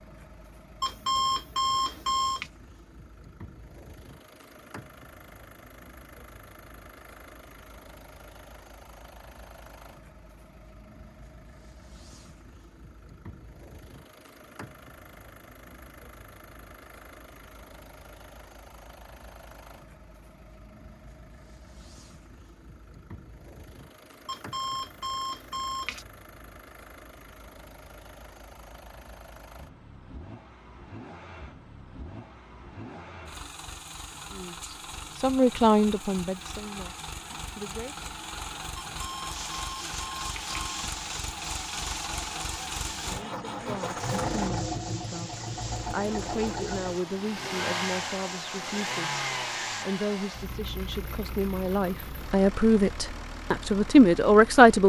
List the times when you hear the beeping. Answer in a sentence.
You can hear the beeping from 0.8 to 2.5 s, from 24.2 to 26.1 s and from 38.8 to 40.9 s.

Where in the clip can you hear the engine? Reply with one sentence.
You can hear the engine from 0.0 to 54.8 s.